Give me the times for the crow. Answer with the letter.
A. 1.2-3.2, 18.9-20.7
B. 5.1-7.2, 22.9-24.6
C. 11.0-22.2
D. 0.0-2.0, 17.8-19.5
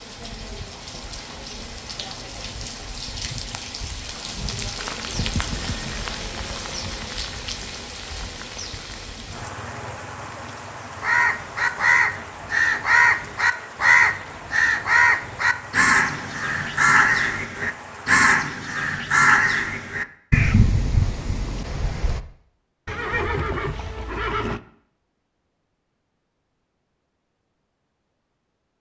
C.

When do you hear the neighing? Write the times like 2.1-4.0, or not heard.
5.1-7.2, 22.9-24.6.